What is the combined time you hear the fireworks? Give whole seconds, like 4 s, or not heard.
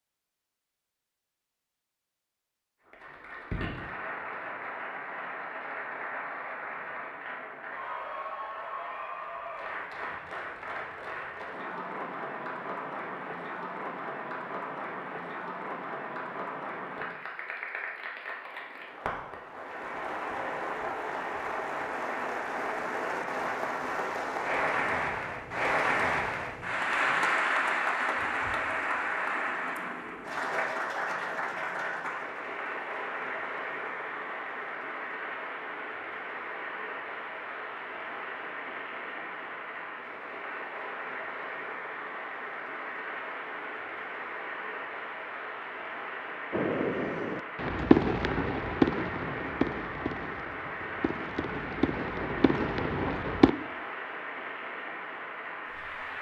7 s.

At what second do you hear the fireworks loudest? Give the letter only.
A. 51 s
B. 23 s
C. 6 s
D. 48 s
D.